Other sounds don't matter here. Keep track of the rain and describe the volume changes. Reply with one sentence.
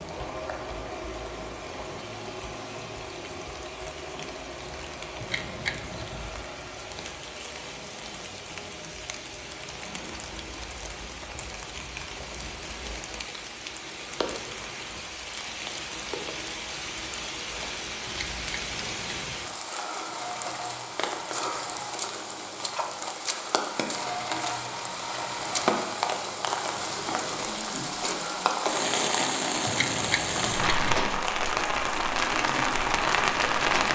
The loudness of the rain goes up.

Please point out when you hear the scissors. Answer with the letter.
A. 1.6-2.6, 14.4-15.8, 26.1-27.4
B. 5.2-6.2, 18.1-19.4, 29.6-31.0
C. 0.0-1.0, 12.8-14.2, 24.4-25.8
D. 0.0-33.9
B.